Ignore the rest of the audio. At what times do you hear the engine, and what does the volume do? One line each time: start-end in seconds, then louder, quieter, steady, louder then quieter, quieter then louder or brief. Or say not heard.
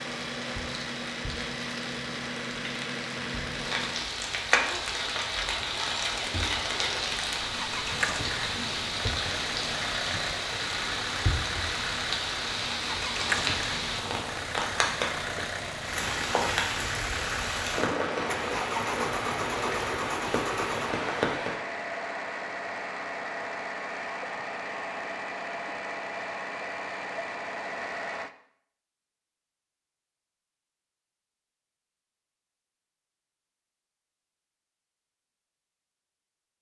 0.0-28.3 steady.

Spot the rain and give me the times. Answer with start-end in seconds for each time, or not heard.
0.0-21.6.